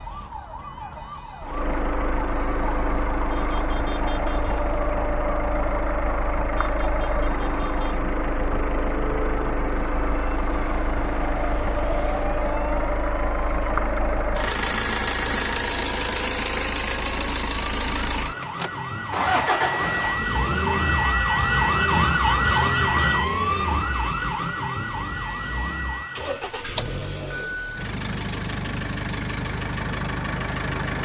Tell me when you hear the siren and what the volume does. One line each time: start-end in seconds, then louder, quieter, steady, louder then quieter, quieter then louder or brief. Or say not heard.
0.0-26.5 louder.